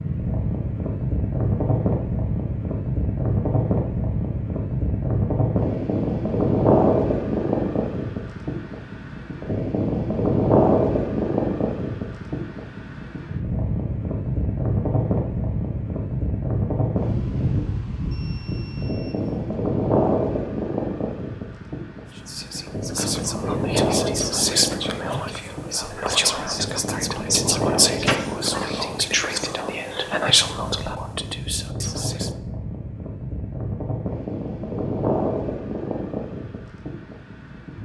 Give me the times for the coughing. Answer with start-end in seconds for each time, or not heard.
28.1-28.9.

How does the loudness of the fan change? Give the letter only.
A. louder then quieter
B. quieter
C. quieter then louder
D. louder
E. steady
B.